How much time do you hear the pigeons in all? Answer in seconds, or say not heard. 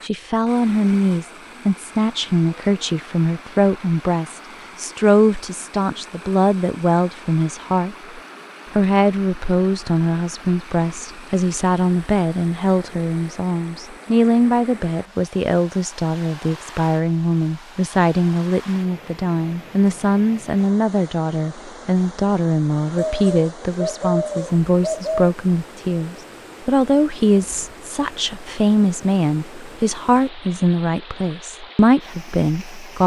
2 s.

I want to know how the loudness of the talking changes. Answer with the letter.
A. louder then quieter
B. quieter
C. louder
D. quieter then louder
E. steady
E.